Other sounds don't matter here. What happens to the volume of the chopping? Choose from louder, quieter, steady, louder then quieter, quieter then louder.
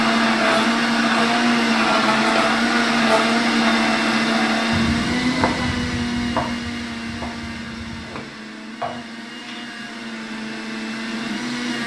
quieter then louder.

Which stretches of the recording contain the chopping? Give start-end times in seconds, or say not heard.
4.7-9.7.